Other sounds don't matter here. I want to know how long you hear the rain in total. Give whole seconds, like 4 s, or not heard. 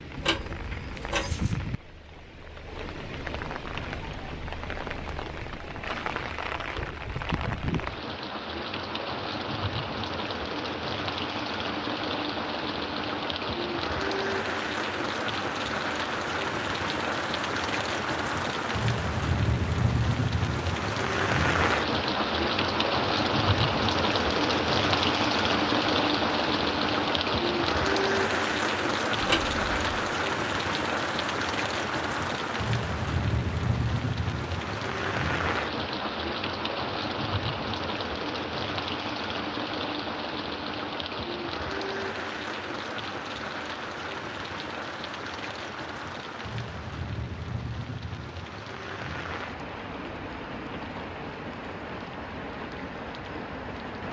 54 s.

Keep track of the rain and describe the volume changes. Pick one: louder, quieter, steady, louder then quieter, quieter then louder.
louder then quieter.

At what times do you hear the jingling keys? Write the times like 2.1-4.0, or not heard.
0.1-1.6, 29.2-30.1.